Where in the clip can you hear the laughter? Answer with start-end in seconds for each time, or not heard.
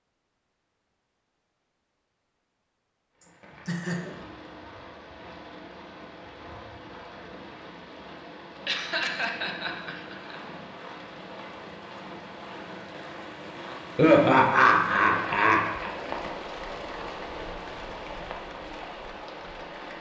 3.2-4.2, 8.7-10.3, 13.9-15.9.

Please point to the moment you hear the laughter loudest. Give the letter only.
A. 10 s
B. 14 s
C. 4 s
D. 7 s
B.